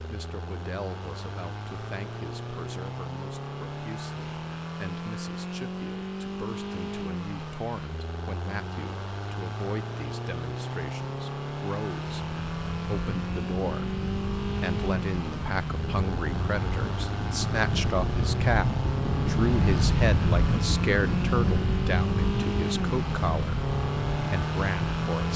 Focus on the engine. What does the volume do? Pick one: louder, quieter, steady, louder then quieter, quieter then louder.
louder.